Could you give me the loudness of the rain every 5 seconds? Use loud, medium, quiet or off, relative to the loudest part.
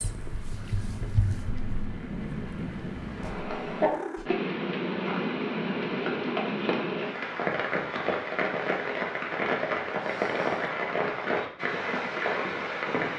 medium, loud, loud.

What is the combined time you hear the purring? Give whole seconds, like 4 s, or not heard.
4 s.